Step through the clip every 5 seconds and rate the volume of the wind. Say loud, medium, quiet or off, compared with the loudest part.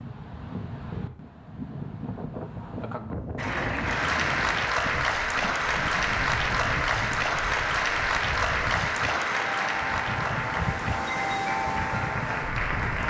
medium, medium, loud.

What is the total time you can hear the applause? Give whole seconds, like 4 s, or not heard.
10 s.